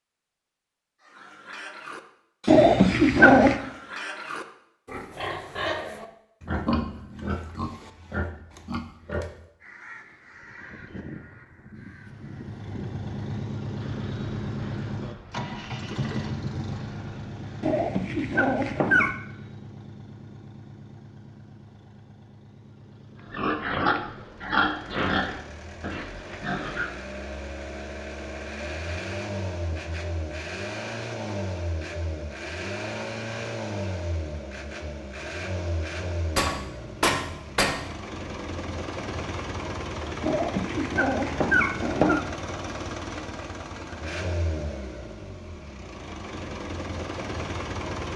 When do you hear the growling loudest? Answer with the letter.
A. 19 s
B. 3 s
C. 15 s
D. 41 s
B.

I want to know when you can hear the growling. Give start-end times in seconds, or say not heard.
2.5-3.6, 17.6-19.1, 40.2-42.2.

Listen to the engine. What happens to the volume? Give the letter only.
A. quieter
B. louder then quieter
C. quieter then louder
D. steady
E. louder
C.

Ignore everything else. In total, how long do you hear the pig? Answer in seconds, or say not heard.
12 s.